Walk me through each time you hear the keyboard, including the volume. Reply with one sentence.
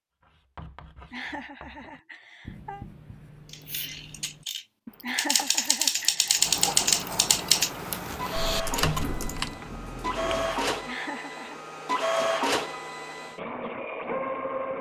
You can hear the keyboard from 3.5 to 9.5 s, getting louder then quieter.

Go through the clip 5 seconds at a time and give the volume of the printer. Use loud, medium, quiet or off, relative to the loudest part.
off, medium, loud.